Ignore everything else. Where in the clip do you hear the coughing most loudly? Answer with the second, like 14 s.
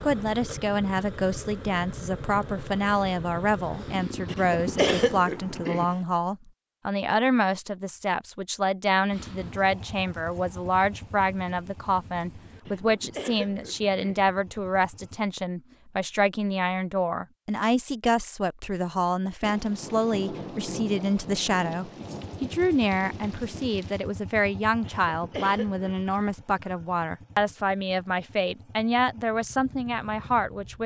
5 s.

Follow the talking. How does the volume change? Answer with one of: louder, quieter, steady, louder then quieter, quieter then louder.
steady.